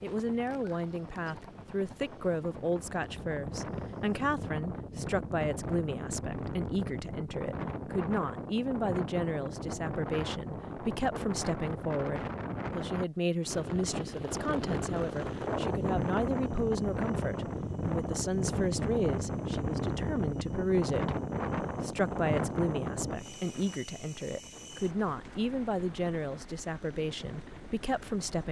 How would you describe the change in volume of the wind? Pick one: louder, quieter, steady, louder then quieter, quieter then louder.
louder then quieter.